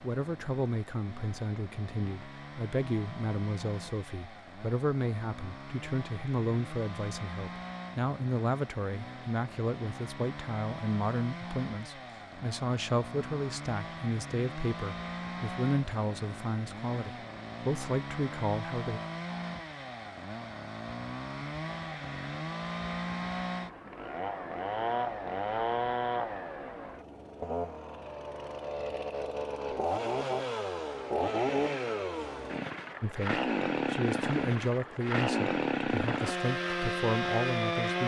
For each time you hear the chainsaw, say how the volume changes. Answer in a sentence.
You can hear the chainsaw from 0.0 to 38.0 s, getting louder.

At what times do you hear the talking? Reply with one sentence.
The talking can be heard from 0.0 to 19.0 s and from 33.0 to 38.0 s.